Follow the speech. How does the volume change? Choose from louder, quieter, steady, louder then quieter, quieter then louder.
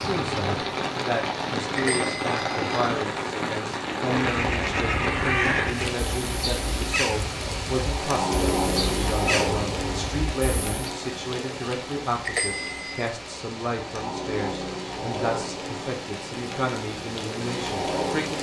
steady.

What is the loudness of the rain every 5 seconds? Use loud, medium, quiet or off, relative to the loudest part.
loud, loud, medium, loud.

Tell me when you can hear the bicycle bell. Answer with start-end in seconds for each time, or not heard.
1.8-2.6, 12.2-13.1.